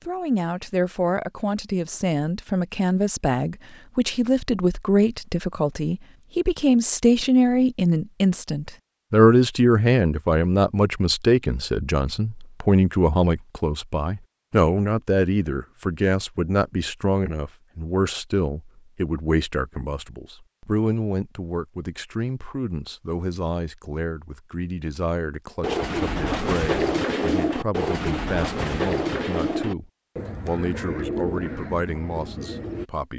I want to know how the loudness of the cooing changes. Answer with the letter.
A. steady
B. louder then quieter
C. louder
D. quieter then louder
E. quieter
E.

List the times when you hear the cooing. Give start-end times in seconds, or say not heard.
25.6-32.9.